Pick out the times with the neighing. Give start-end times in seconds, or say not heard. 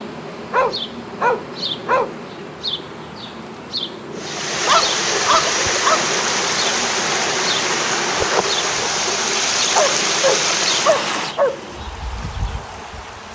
not heard.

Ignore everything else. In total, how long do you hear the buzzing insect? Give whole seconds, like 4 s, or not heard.
13 s.